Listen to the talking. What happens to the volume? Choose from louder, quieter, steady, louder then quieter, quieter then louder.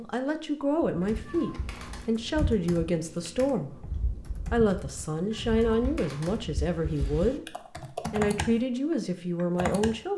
steady.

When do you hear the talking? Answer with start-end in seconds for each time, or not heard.
0.0-10.1.